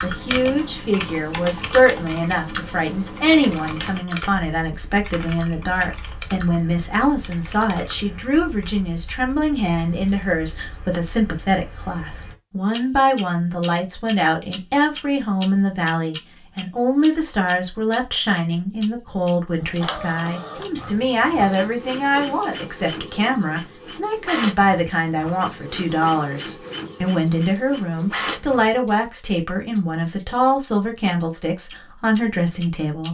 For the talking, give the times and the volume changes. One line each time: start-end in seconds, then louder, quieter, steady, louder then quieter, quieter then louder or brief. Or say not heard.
0.0-33.0 steady.